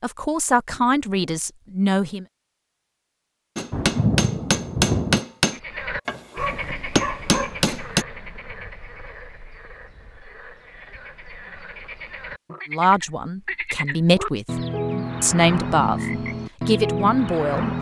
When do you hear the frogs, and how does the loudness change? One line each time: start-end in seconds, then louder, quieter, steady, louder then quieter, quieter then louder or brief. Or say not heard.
5.5-17.7 quieter then louder.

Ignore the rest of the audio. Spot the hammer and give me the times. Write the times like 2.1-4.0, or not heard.
3.5-8.1.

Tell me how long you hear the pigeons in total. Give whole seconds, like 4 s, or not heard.
not heard.